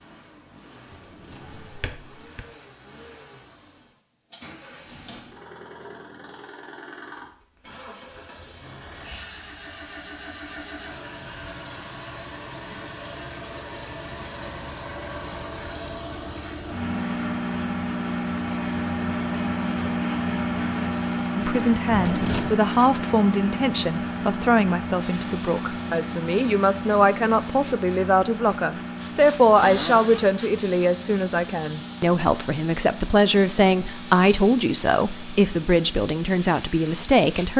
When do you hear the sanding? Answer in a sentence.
You can't hear the sanding here.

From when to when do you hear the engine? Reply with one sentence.
You can hear the engine from 0.0 to 37.5 s.